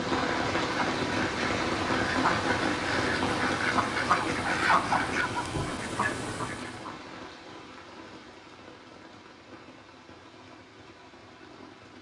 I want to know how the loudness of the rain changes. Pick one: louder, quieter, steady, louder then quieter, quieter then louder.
quieter.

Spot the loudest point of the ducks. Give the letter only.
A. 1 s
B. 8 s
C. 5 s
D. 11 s
C.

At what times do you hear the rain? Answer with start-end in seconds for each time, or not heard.
0.0-11.9.